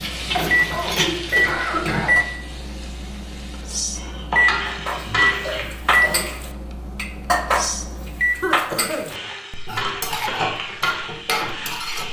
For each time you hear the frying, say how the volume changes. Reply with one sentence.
You can hear the frying from 0.0 to 5.7 s, getting quieter then louder; and briefly from 9.1 to 12.0 s.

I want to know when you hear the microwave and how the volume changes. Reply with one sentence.
You can hear the microwave from 0.0 to 8.4 s, getting quieter.